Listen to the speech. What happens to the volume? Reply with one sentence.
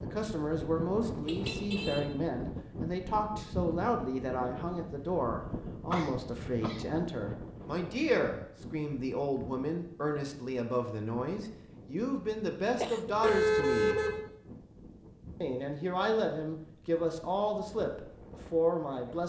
The loudness of the speech stays about the same.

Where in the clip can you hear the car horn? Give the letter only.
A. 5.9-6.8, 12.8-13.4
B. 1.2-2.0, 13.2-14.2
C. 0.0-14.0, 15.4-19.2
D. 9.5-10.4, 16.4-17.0
B.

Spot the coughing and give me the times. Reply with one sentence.
The coughing can be heard from 5.9 to 6.8 s and from 12.8 to 13.4 s.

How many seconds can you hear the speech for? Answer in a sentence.
You can hear the speech for 18 seconds altogether.